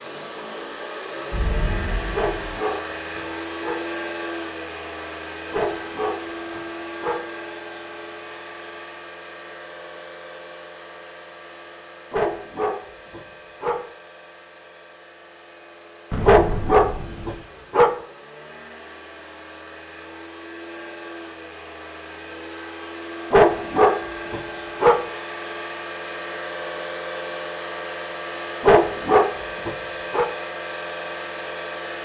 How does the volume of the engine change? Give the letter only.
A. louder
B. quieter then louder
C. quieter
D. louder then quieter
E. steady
B.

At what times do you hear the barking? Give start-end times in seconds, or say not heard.
2.1-3.8, 5.5-7.2, 12.1-13.8, 16.2-17.9, 23.3-25.0, 28.6-30.3.